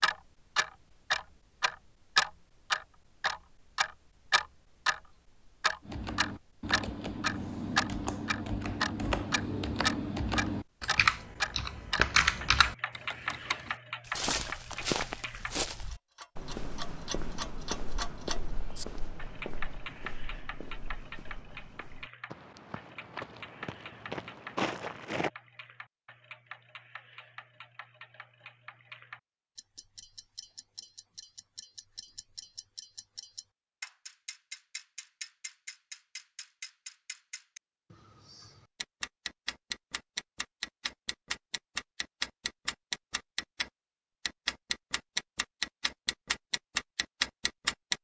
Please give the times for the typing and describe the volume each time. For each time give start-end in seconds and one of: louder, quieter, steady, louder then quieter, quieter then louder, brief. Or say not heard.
5.8-13.7 louder.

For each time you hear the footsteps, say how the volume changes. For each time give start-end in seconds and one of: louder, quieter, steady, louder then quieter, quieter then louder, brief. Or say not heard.
14.1-25.3 quieter then louder.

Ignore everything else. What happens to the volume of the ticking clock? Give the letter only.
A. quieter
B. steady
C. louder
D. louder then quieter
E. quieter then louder
E.